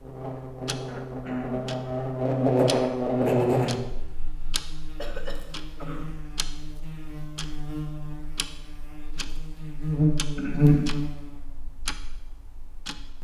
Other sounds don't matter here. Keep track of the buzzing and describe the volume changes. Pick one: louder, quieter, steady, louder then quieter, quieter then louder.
quieter then louder.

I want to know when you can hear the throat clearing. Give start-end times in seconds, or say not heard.
0.8-1.7, 5.0-6.1, 10.2-10.9.